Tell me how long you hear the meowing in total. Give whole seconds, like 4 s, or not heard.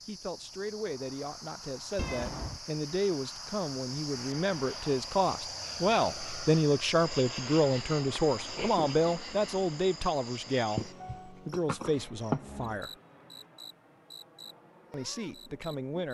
3 s.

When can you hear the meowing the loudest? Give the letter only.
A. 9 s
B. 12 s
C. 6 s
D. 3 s
B.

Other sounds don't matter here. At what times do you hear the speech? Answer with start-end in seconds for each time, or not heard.
0.1-12.9, 14.9-16.0.